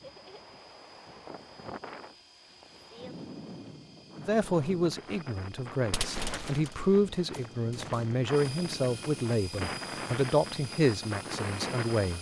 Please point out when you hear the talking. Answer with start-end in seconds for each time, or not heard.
4.2-12.1.